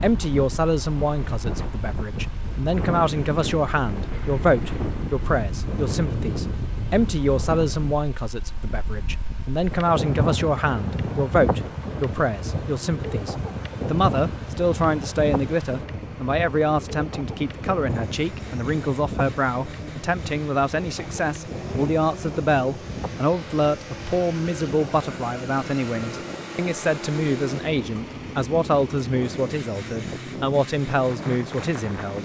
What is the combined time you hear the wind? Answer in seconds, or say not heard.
32 s.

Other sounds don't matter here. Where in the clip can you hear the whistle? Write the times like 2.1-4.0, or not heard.
not heard.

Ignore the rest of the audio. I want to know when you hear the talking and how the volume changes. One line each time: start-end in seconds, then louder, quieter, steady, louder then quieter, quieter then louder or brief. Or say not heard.
0.0-32.2 steady.